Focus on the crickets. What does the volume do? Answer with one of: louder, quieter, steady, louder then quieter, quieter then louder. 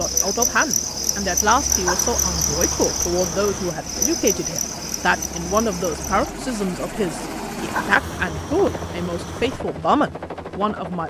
quieter.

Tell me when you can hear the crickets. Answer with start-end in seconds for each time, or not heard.
0.0-6.3.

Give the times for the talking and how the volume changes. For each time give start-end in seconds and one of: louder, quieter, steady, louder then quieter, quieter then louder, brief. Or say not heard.
0.0-11.0 steady.